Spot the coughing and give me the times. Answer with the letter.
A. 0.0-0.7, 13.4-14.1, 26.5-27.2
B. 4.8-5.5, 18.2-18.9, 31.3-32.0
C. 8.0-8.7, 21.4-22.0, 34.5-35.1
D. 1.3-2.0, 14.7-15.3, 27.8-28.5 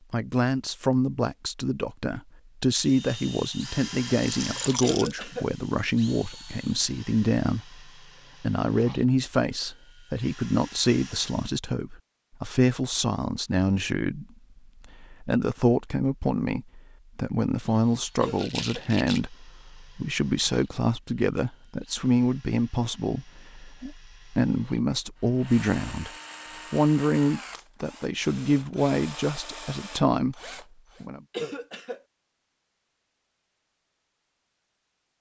B.